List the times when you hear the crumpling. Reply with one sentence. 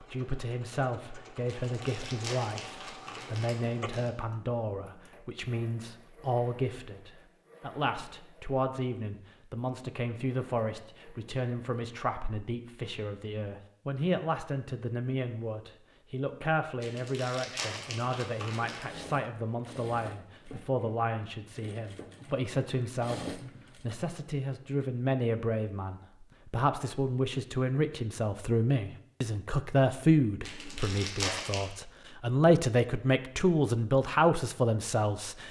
The crumpling can be heard from 1.4 to 4.1 s, from 16.8 to 18.9 s and from 30.4 to 31.7 s.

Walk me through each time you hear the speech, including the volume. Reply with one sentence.
The speech can be heard from 0.0 to 35.4 s, getting louder.